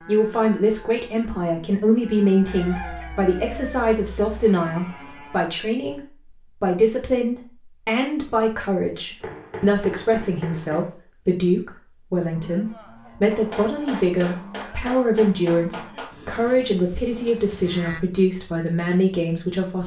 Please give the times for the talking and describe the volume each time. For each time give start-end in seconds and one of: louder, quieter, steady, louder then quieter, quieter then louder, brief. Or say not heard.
0.0-19.8 steady.